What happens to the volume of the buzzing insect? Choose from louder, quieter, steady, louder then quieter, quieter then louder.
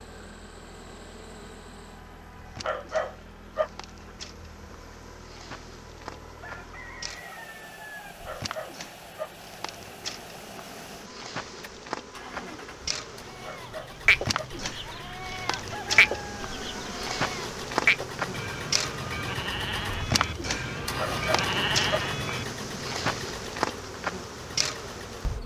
louder.